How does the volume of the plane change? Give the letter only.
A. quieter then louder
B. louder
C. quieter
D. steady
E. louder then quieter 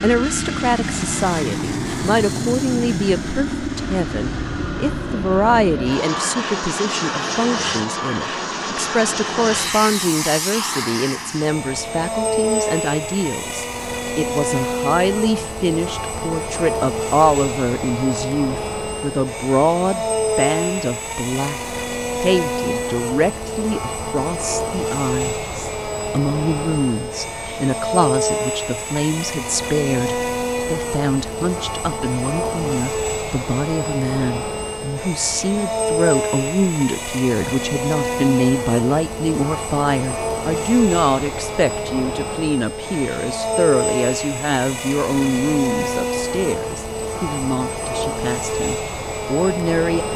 D.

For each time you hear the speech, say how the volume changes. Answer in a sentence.
The speech can be heard from 0.0 to 50.1 s, at a steady volume.